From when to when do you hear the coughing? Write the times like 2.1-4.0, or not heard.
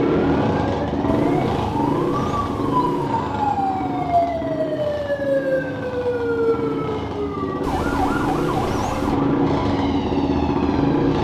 not heard.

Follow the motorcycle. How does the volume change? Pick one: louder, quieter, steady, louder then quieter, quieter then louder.
quieter then louder.